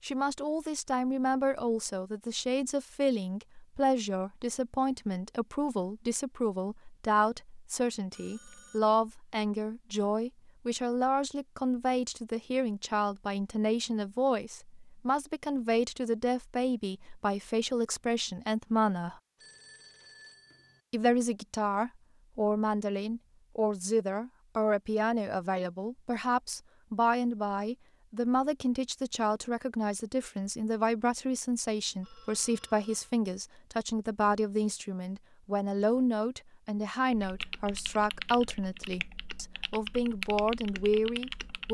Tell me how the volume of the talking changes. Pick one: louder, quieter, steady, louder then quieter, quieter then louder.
steady.